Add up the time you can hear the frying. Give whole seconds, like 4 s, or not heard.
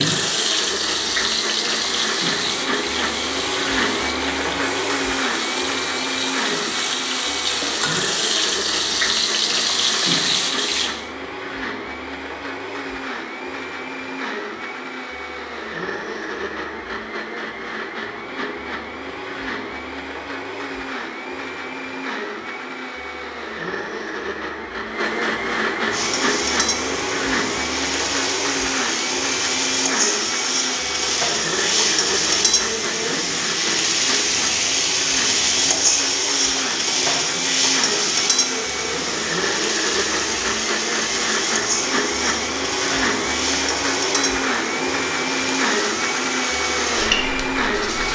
33 s.